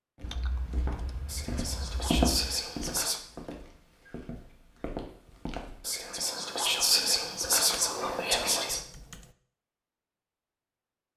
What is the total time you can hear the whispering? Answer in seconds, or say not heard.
5 s.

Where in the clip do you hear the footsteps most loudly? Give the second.
2 s.